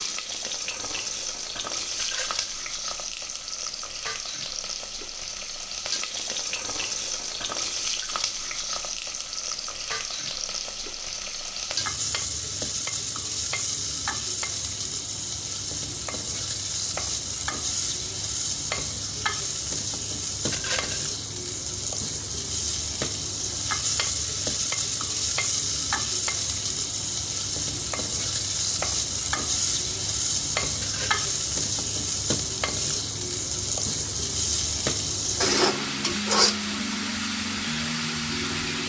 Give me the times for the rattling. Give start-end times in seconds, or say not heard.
1.9-2.5, 20.5-21.1, 30.8-31.2.